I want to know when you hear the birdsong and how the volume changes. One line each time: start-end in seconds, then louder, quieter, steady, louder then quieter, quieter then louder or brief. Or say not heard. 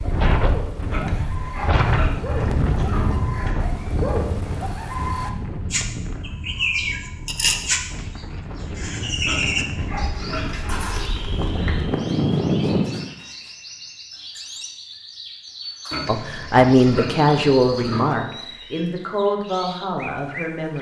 0.0-20.7 louder then quieter.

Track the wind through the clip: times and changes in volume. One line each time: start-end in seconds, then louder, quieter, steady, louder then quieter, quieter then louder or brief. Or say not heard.
0.0-13.1 quieter then louder.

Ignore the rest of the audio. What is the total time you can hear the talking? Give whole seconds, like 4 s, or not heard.
5 s.